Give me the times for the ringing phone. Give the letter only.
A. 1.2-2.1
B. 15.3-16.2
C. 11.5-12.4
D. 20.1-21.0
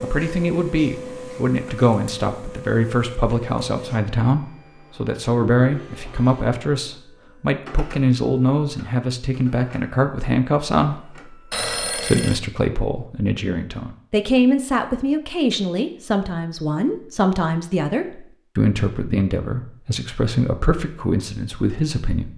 C.